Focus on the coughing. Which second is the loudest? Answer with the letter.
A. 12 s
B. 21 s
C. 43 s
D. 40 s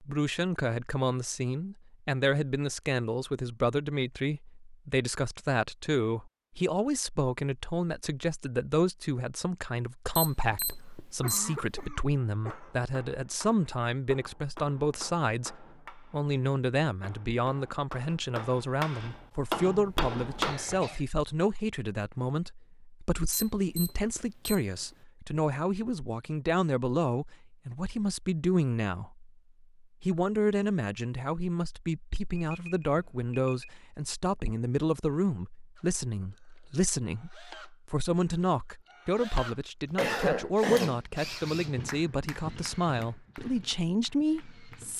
D.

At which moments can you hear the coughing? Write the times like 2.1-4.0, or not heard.
10.8-12.7, 19.6-21.1, 40.0-41.0.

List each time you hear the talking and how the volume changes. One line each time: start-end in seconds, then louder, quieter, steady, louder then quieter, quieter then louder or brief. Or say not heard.
0.0-44.9 steady.